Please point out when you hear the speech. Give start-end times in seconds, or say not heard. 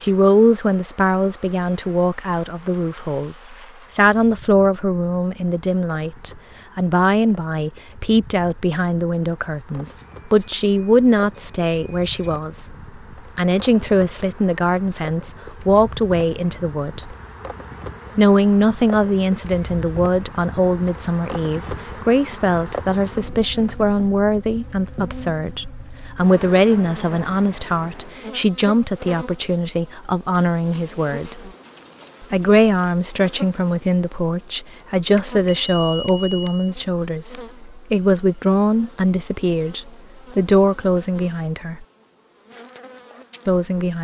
0.0-12.8, 13.3-17.1, 18.1-31.5, 32.2-41.9, 43.5-43.9.